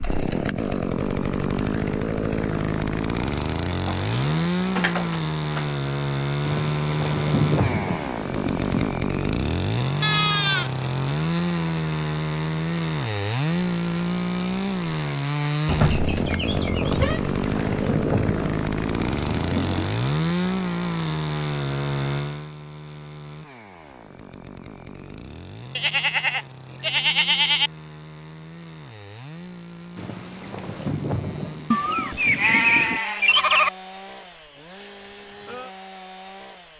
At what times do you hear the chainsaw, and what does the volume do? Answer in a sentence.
You can hear the chainsaw from 0.0 to 36.7 s, getting quieter.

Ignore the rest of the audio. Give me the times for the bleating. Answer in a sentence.
You can hear the bleating from 3.9 to 5.7 s, from 10.0 to 10.7 s, from 15.7 to 17.2 s, from 25.8 to 27.7 s and from 31.7 to 33.7 s.